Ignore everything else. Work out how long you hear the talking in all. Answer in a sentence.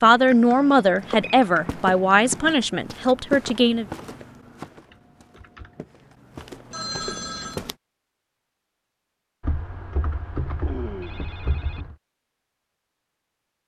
The talking can be heard for 4 seconds in total.